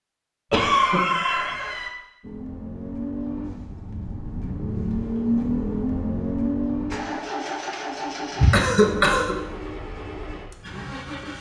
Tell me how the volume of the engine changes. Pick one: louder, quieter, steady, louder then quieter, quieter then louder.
louder then quieter.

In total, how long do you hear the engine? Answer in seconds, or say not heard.
9 s.